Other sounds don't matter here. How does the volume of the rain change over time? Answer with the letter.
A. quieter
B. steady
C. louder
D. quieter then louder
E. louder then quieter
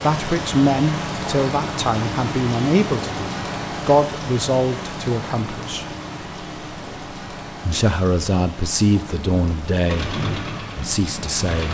A.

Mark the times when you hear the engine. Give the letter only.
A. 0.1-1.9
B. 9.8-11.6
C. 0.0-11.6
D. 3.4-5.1
B.